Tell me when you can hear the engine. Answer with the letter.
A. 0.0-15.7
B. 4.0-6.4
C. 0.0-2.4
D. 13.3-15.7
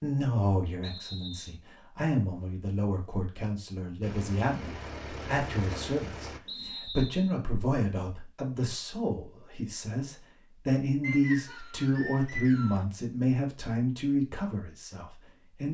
B.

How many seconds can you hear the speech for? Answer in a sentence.
You can hear the speech for 16 seconds altogether.